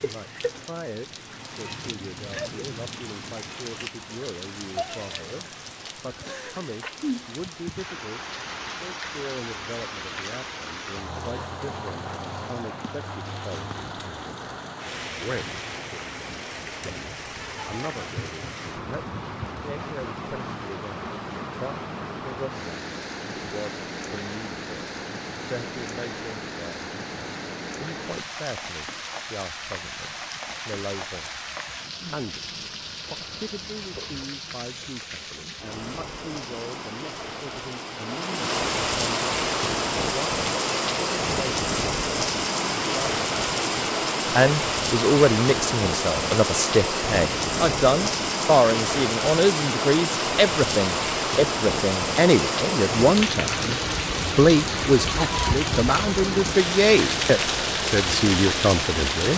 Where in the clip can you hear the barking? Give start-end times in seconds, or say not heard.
not heard.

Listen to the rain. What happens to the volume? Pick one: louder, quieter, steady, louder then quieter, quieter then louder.
louder.